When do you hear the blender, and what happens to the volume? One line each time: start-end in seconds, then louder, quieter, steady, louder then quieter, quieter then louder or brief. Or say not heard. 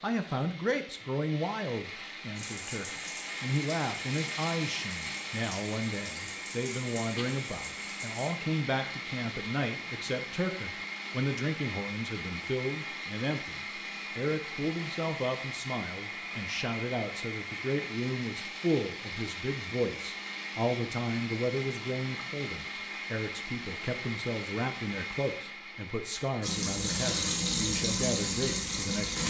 0.0-29.2 steady.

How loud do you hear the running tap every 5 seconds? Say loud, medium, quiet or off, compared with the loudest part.
quiet, quiet, off, off, off, loud.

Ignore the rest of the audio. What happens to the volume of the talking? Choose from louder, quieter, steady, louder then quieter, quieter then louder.
steady.